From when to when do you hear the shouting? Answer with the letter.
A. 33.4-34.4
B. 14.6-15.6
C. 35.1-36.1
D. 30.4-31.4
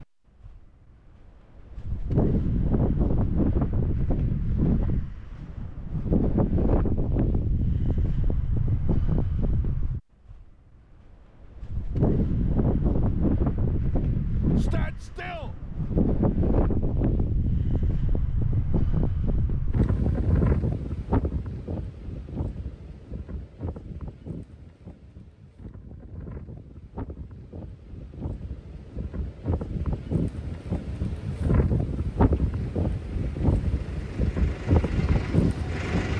B.